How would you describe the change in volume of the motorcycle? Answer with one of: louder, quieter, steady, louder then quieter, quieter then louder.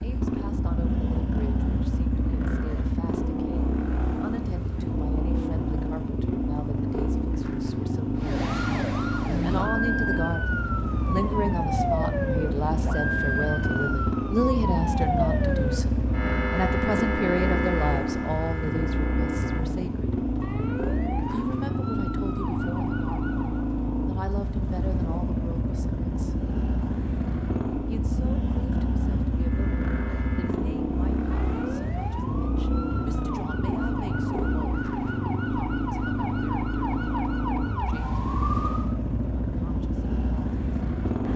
steady.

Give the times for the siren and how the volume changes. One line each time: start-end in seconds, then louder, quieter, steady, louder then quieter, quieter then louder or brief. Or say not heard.
8.2-23.6 quieter
29.4-39.0 louder.